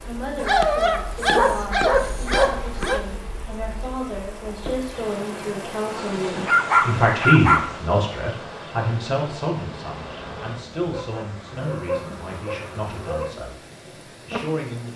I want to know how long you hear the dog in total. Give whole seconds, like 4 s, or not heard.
7 s.